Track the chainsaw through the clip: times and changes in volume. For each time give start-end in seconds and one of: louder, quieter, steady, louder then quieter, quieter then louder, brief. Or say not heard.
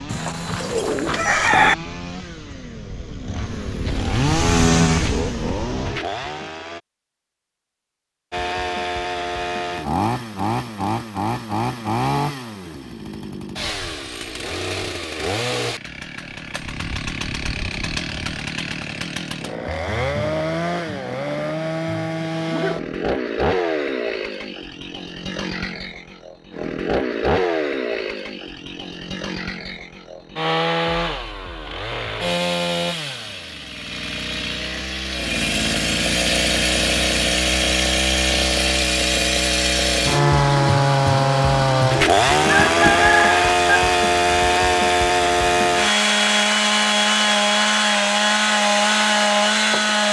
0.0-6.8 louder then quieter
8.3-50.0 louder.